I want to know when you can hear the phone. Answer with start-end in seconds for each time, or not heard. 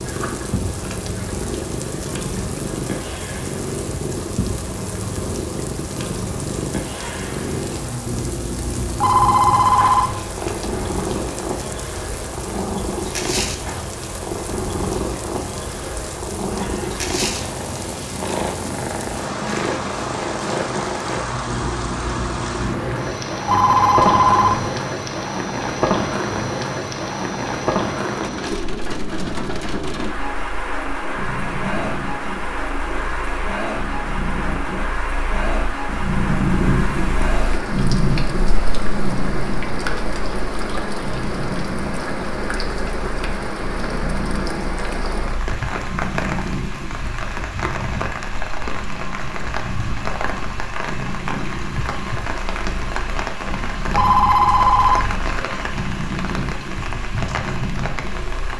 8.9-10.2, 23.4-24.7, 53.9-55.1.